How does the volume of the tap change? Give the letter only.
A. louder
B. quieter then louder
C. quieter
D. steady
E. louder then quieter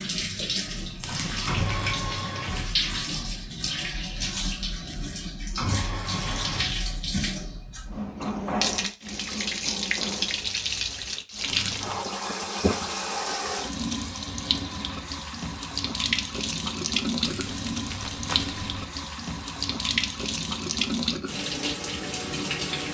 D.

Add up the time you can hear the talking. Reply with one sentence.
You can't hear the talking here.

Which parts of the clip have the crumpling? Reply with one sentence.
The crumpling can be heard from 1.0 to 1.9 s, from 11.4 to 12.1 s and from 17.2 to 18.9 s.